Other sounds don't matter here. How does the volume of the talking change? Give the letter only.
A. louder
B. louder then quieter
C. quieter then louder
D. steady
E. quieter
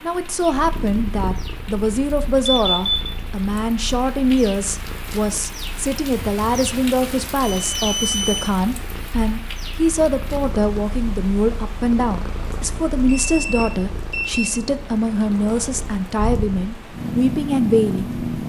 D.